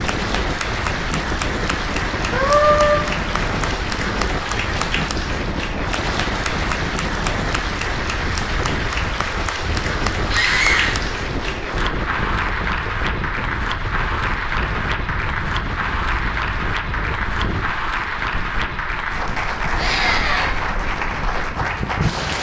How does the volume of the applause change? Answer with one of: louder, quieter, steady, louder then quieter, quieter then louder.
steady.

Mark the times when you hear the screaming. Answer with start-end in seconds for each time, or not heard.
2.3-3.0, 10.3-11.0, 19.8-20.6.